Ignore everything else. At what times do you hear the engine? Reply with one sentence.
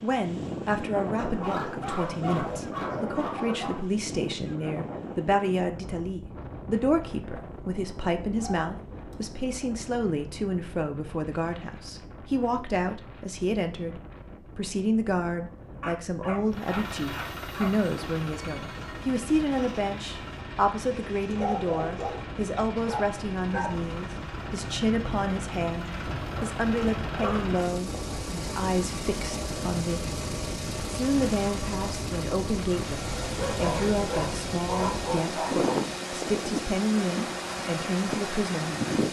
You can hear the engine from 16.4 to 39.0 s.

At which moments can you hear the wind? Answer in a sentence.
The wind can be heard from 0.0 to 39.0 s.